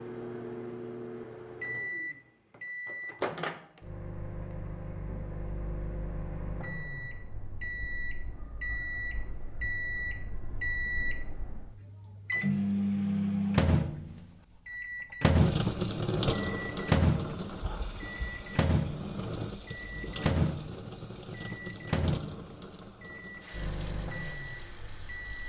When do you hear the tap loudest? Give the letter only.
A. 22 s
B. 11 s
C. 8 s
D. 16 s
D.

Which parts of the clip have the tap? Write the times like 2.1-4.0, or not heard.
15.3-25.4.